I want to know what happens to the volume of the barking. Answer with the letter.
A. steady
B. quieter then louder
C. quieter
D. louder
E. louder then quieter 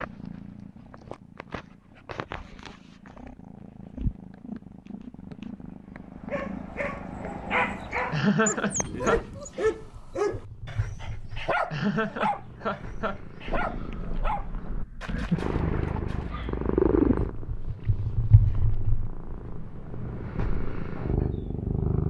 C.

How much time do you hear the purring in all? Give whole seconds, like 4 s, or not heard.
22 s.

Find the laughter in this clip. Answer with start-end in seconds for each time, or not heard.
8.1-9.2, 11.7-13.2.